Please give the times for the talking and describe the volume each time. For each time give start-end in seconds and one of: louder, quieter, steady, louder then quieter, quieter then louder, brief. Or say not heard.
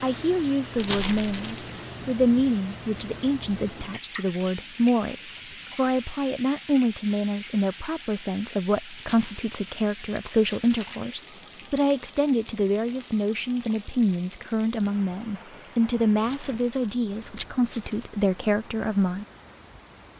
0.0-19.2 steady.